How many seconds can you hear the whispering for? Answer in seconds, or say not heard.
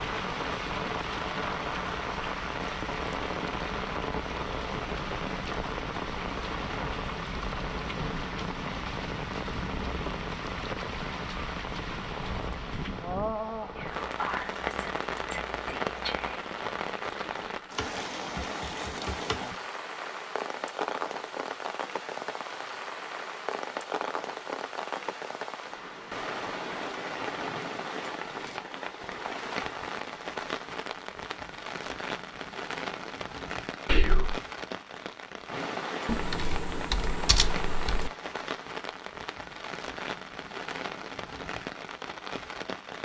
3 s.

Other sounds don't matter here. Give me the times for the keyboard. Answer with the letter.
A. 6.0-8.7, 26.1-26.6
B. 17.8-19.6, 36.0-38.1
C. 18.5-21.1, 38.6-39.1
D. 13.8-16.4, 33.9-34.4
B.